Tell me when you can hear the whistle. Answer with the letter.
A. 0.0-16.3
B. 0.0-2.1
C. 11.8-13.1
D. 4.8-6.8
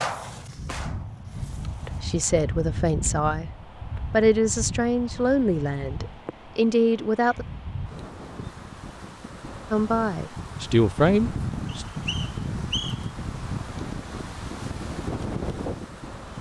C.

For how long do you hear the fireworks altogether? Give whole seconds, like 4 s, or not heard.
2 s.